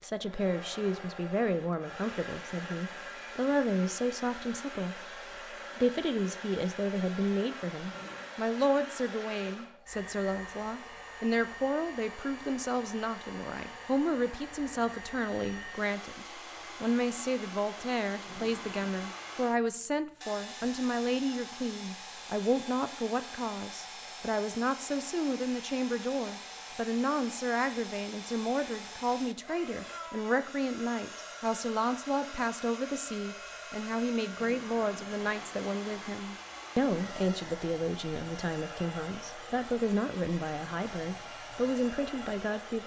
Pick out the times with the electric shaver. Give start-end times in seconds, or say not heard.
not heard.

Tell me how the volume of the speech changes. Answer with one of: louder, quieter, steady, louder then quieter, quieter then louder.
steady.